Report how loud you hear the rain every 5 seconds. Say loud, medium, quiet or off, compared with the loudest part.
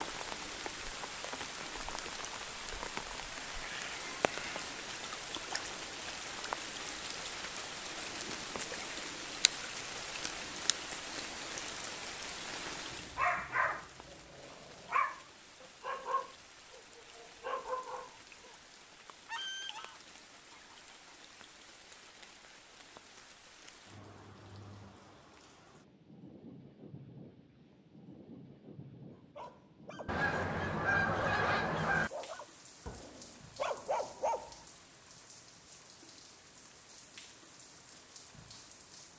loud, loud, loud, quiet, quiet, quiet, quiet, quiet.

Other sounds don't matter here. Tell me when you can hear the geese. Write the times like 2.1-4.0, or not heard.
3.4-4.8, 19.2-21.1, 30.1-32.1.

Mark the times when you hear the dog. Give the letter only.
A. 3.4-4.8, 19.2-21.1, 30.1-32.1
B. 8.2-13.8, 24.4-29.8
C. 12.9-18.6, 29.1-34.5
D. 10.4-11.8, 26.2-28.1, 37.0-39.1
C.